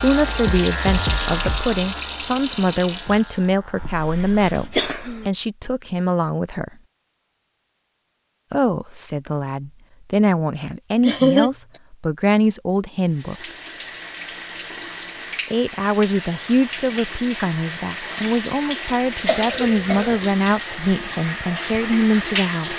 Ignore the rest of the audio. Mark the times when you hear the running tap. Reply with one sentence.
The running tap can be heard from 0.0 to 3.5 s and from 13.1 to 22.7 s.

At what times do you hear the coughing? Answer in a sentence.
You can hear the coughing from 3.8 to 5.2 s, from 11.1 to 11.5 s and from 19.2 to 20.2 s.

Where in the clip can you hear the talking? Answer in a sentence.
You can hear the talking from 0.0 to 6.7 s, from 8.5 to 13.4 s and from 15.5 to 22.7 s.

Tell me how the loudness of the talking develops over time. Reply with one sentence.
The loudness of the talking stays about the same.